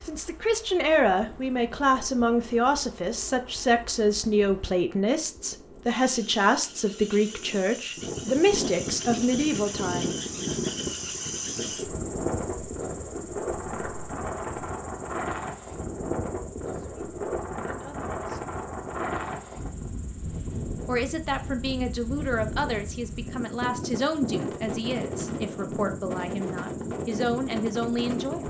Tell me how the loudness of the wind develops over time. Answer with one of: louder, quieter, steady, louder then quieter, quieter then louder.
louder.